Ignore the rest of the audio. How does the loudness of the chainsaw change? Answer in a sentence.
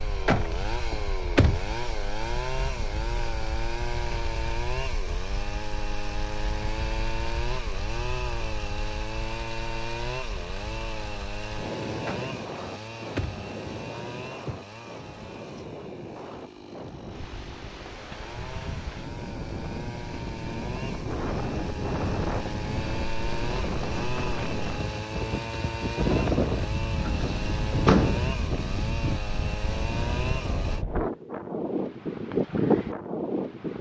The loudness of the chainsaw goes down, then up.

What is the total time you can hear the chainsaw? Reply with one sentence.
You can hear the chainsaw for 31 seconds altogether.